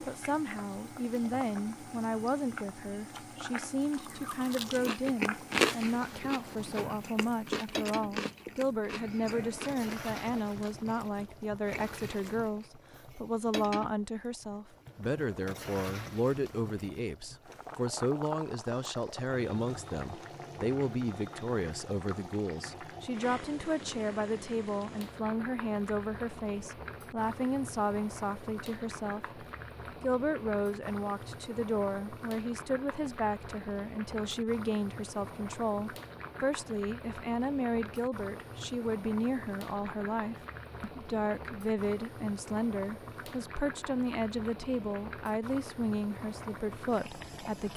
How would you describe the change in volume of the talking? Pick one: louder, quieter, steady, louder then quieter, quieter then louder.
steady.